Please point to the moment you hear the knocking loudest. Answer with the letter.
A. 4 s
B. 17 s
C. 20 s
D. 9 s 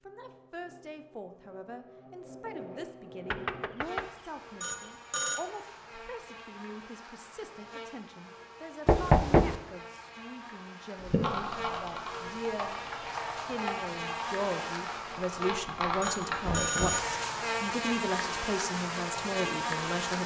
D.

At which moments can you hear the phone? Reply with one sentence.
You can hear the phone from 4.6 to 5.5 s and from 16.0 to 17.0 s.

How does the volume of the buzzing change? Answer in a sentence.
The loudness of the buzzing goes up.